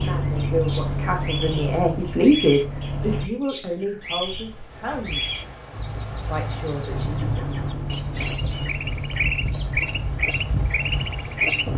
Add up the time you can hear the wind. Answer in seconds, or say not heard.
8 s.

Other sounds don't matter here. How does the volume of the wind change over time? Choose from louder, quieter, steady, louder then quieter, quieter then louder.
louder.